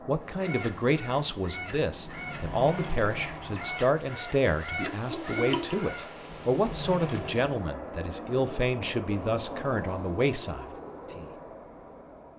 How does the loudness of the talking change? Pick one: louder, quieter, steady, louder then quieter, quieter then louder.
steady.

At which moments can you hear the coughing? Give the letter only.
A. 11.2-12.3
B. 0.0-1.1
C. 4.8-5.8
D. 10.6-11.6
C.